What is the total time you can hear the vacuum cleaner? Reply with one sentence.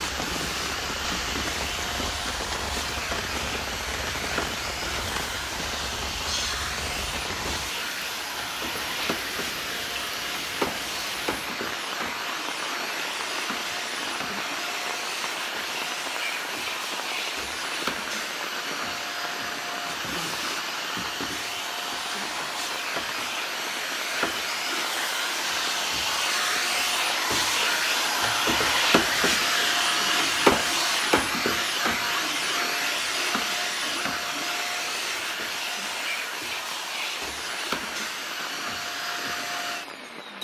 The vacuum cleaner can be heard for 40 seconds in total.